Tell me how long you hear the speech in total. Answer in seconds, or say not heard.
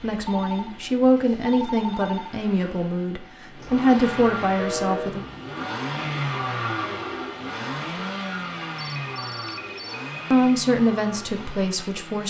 7 s.